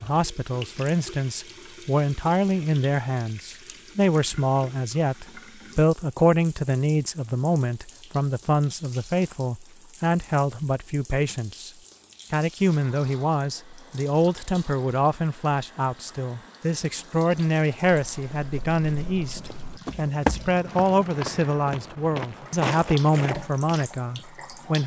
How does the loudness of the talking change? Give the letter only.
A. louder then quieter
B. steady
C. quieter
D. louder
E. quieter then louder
B.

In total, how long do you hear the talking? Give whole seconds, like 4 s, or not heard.
24 s.